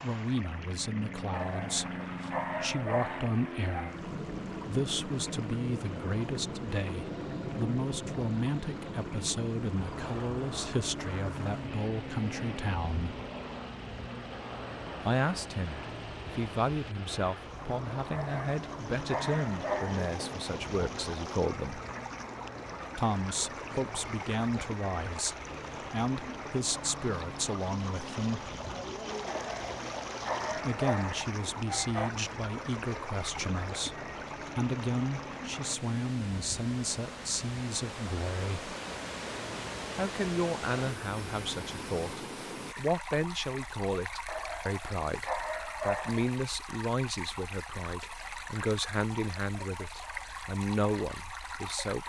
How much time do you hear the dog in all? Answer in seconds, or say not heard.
10 s.